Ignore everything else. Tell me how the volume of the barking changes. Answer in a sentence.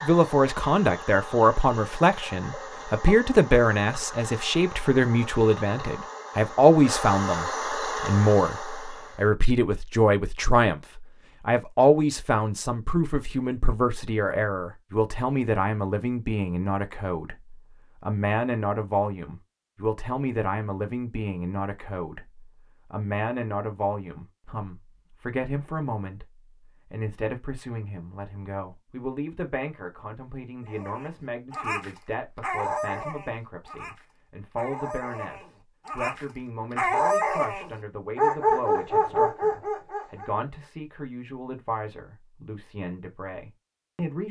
The loudness of the barking goes down, then up.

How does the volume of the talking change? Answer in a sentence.
The volume of the talking goes down.